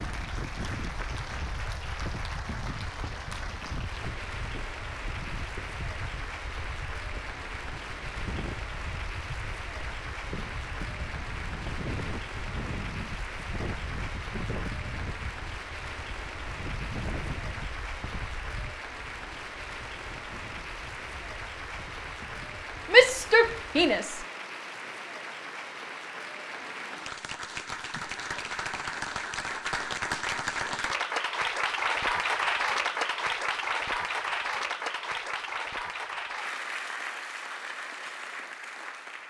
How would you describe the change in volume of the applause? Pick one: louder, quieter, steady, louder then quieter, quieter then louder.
louder.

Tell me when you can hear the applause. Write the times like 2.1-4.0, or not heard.
0.0-39.2.